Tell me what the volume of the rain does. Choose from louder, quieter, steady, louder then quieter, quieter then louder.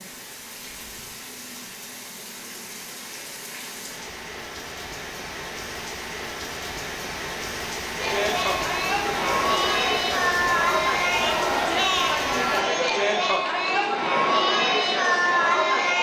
louder.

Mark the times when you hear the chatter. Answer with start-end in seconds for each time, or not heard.
8.0-15.9.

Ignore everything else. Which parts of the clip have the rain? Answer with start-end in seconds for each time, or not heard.
0.0-12.7.